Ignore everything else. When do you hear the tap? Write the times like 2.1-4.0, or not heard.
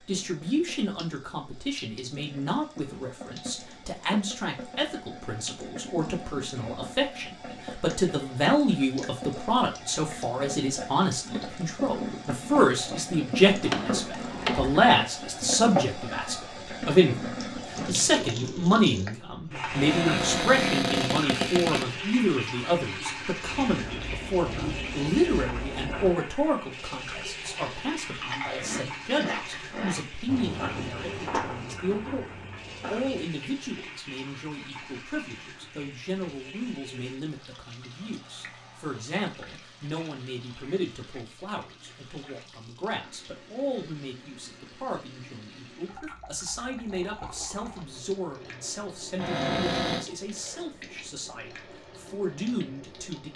0.0-53.3.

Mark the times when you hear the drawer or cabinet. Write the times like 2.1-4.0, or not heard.
13.6-14.9, 19.7-21.9, 49.1-50.0.